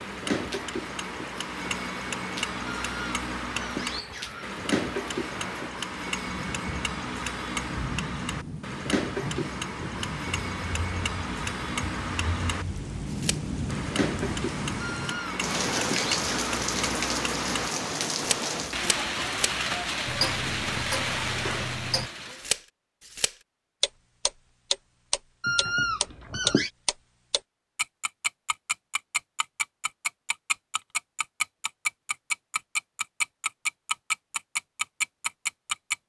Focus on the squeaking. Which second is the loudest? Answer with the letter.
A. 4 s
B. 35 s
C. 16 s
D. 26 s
D.